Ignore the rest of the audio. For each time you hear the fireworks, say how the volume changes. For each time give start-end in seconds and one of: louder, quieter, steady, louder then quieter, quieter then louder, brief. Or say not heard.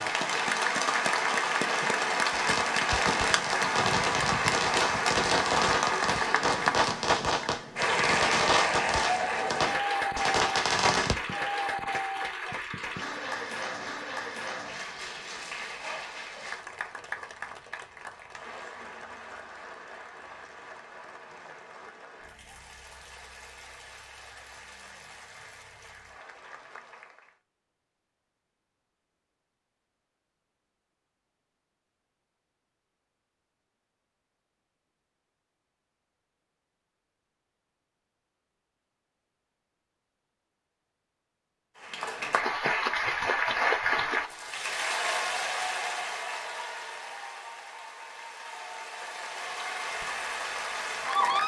2.3-11.2 steady.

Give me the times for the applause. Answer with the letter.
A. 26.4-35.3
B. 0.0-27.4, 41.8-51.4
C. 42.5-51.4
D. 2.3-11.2
B.